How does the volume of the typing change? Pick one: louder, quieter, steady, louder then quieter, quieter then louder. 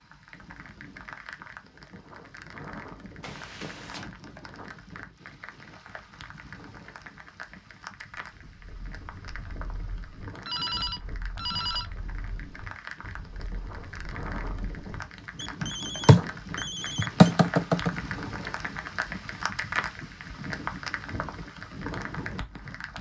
louder.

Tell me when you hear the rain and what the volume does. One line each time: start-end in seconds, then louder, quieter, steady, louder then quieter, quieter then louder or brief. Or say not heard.
0.0-22.9 louder.